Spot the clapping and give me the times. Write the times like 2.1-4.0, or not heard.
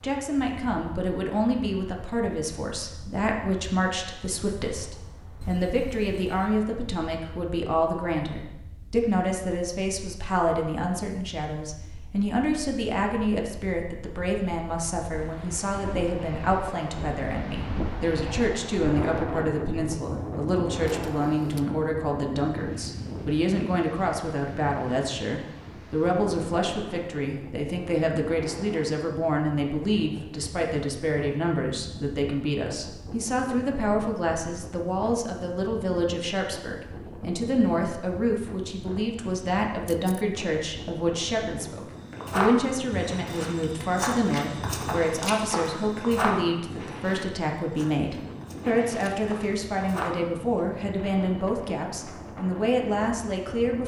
not heard.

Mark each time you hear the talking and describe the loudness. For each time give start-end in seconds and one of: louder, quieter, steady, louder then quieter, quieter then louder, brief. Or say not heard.
0.0-53.8 steady.